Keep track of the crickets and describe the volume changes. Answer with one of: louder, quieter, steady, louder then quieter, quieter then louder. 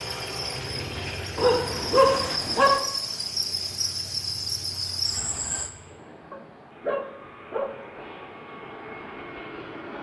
louder.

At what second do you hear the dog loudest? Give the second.
2 s.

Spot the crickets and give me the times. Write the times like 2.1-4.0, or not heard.
0.0-5.7.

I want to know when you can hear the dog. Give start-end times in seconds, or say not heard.
1.4-2.8, 6.3-7.8.